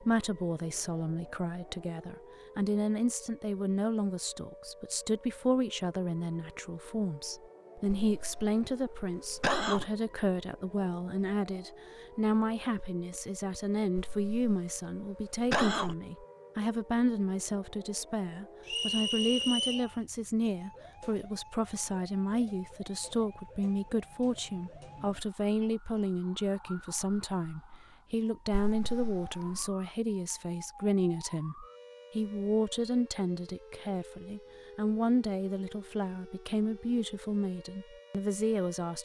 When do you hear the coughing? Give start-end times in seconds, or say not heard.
7.8-9.9, 13.9-15.9, 28.5-29.6.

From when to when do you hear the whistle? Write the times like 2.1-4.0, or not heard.
18.6-19.9.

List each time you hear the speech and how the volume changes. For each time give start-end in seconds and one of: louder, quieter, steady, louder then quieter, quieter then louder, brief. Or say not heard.
0.0-39.0 steady.